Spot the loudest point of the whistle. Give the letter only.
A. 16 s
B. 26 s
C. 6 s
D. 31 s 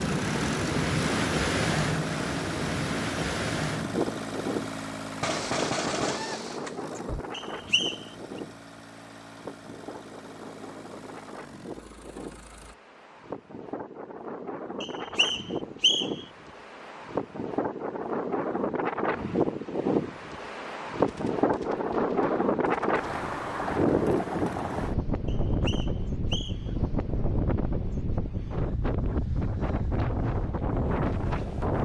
A.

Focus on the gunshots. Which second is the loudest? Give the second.
6 s.